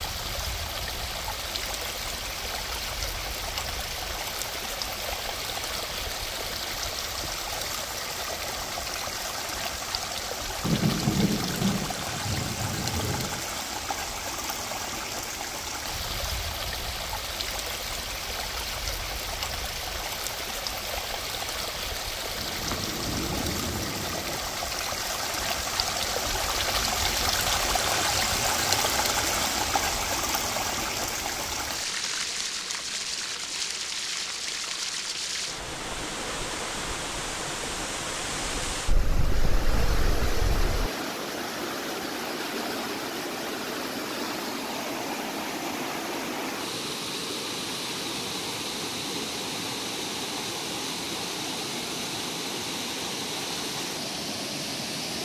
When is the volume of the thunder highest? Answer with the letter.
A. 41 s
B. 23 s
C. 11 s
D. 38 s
C.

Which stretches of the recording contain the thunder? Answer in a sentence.
The thunder can be heard from 10.6 to 13.4 s, from 22.4 to 24.4 s and from 38.9 to 40.9 s.